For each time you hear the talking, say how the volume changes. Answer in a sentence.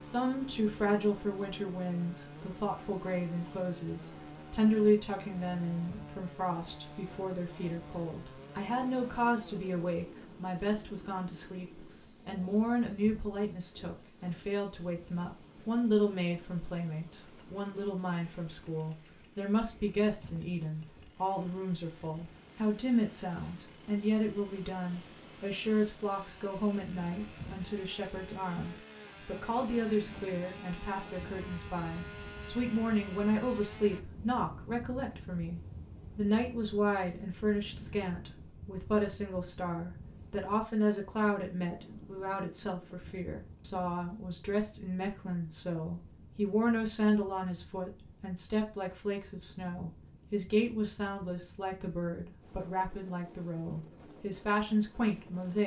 You can hear the talking from 0.0 to 55.6 s, at a steady volume.